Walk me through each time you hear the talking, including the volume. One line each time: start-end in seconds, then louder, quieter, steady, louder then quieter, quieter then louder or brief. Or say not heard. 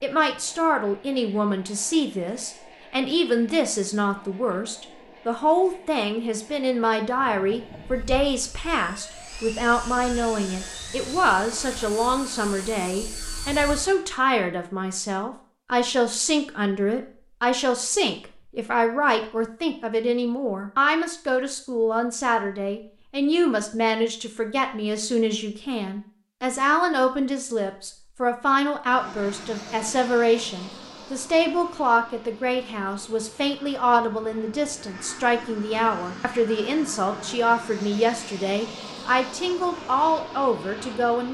0.0-41.2 steady.